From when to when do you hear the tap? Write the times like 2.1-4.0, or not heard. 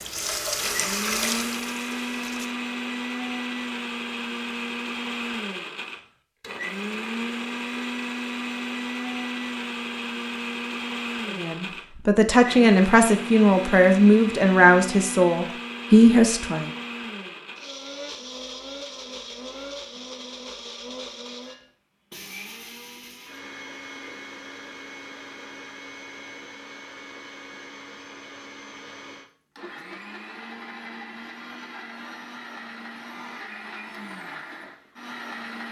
0.0-2.5.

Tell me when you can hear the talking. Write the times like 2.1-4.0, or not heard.
11.3-16.7.